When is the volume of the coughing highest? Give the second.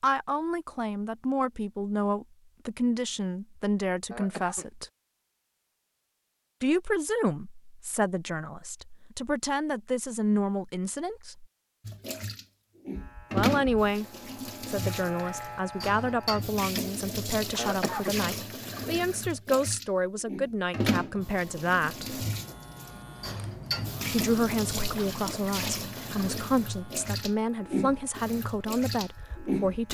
18 s.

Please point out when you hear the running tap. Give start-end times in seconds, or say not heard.
11.8-29.8.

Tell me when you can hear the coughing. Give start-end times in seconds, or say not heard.
4.1-4.7, 17.6-18.1.